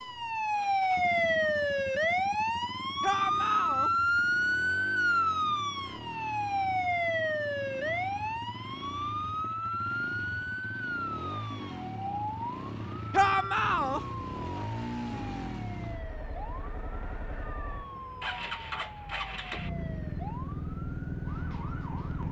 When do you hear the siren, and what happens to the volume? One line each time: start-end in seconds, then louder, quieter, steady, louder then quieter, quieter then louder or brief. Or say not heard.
0.0-22.2 quieter.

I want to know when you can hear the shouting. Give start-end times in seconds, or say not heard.
3.0-3.9, 13.1-14.0.